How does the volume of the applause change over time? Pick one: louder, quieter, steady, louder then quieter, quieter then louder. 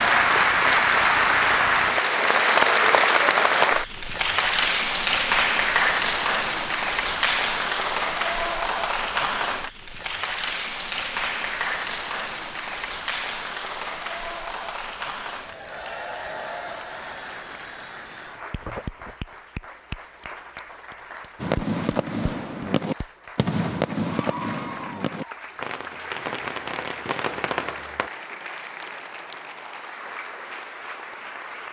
quieter.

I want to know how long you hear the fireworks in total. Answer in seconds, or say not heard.
7 s.